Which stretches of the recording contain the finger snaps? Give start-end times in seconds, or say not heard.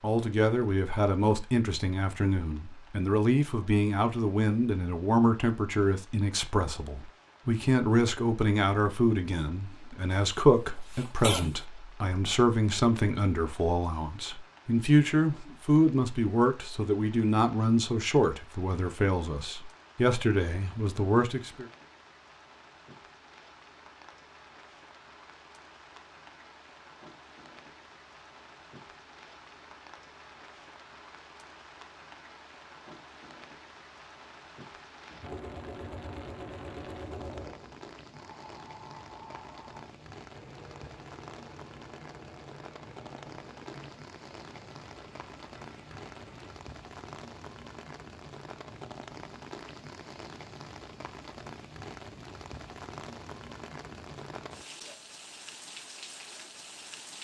not heard.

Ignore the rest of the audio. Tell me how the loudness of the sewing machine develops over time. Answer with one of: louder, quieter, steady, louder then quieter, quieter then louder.
quieter.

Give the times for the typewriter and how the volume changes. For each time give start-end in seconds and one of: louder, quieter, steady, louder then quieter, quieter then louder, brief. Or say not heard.
not heard.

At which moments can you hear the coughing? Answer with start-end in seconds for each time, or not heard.
10.3-11.6.